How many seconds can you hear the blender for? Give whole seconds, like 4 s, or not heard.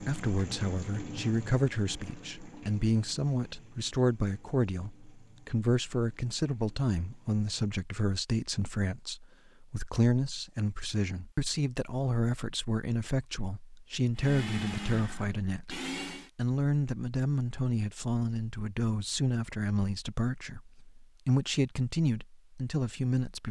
2 s.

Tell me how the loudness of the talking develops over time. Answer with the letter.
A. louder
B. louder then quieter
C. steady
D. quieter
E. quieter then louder
C.